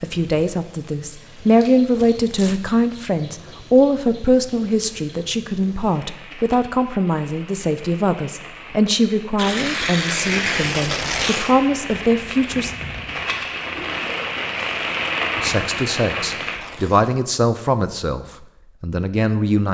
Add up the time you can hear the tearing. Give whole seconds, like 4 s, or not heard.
4 s.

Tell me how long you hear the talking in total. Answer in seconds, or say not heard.
17 s.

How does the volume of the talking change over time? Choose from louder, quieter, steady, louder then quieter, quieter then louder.
steady.